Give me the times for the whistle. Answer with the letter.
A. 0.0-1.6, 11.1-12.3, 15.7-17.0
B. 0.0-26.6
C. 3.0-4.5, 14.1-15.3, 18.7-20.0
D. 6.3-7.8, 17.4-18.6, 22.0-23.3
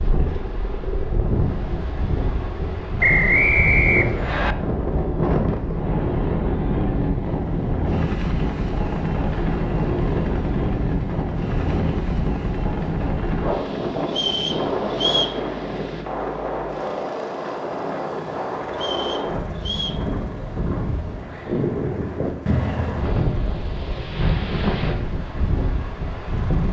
C.